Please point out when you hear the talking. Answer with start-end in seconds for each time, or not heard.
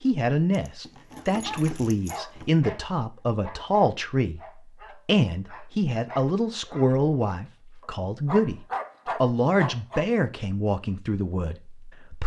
0.0-4.4, 5.0-8.6, 9.2-12.2.